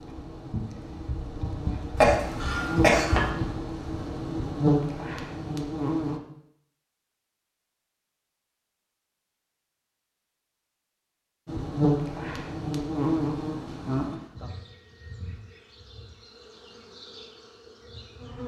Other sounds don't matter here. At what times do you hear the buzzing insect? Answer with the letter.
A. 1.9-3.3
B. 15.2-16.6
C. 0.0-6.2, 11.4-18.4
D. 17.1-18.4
C.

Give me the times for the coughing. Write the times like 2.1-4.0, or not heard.
1.9-3.3.